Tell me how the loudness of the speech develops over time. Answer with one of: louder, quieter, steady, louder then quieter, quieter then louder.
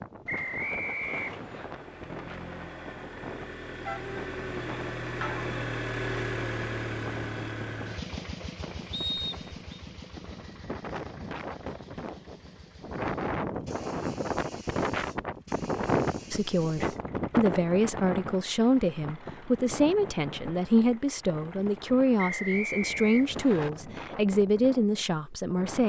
steady.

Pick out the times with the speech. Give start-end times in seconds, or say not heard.
16.3-25.8.